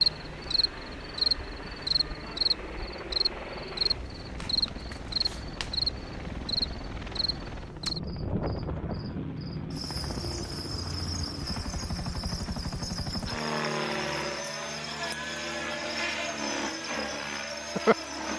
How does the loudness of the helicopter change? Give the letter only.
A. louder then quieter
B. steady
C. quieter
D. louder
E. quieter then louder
D.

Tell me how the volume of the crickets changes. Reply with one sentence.
The volume of the crickets goes down.